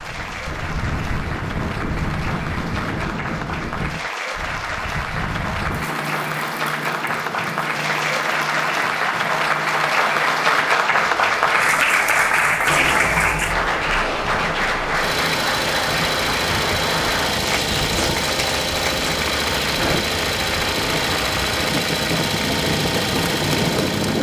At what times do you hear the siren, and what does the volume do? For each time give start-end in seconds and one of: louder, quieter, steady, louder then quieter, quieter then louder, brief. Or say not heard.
not heard.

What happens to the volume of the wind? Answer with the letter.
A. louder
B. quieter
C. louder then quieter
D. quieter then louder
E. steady
D.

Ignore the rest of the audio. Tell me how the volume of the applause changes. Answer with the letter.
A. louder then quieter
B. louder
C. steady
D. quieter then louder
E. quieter
A.